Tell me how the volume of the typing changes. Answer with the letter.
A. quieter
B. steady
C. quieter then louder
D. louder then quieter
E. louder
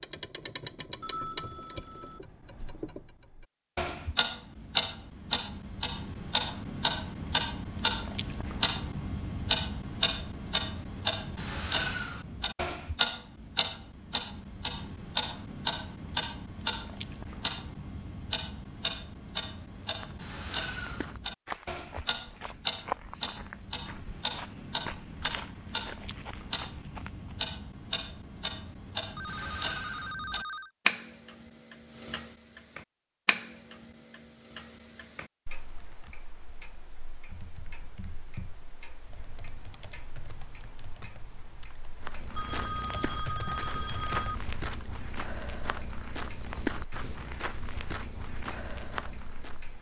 E.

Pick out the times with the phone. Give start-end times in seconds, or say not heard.
1.0-2.2, 29.1-30.7, 42.4-44.4.